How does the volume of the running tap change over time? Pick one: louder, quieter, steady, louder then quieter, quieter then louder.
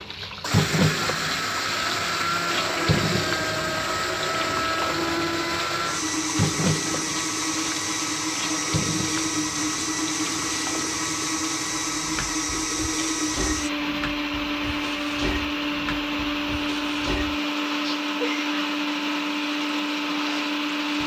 quieter.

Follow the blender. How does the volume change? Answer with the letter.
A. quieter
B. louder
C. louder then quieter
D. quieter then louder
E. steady
E.